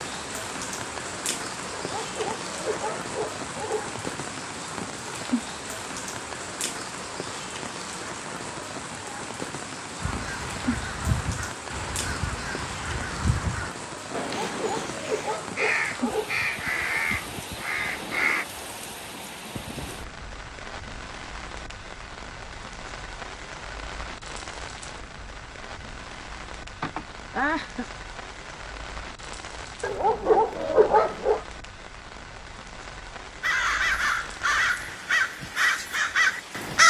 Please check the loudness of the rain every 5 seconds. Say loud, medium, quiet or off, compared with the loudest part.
loud, loud, loud, loud, medium, medium, medium, medium.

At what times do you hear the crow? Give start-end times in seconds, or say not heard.
10.0-18.4, 33.4-36.8.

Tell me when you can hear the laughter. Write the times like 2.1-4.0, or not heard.
26.8-27.9.